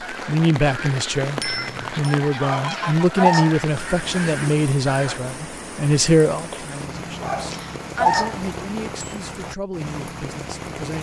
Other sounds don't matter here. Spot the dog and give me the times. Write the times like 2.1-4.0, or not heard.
2.4-3.6, 7.2-8.4.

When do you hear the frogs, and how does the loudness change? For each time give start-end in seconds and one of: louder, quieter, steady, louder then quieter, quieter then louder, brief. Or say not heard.
not heard.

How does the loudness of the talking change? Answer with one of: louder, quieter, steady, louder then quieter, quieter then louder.
quieter.